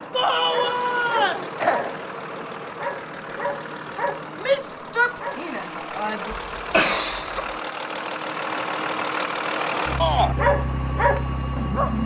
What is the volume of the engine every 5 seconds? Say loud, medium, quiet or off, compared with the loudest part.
medium, loud, loud.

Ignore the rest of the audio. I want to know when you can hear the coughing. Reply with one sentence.
You can hear the coughing from 1.6 to 2.0 s and from 6.3 to 7.5 s.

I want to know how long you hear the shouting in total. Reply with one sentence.
You can hear the shouting for 4 seconds altogether.